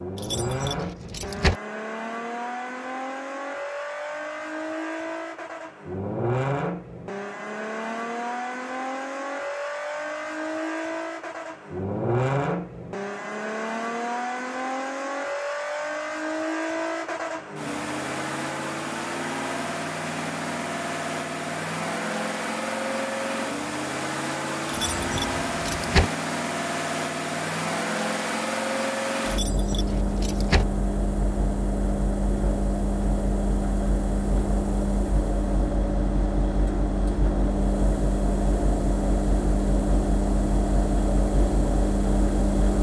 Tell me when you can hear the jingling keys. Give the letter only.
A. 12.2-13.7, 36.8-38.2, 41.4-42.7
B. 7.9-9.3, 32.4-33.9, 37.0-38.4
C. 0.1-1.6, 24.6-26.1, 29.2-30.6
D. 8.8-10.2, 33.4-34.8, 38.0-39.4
C.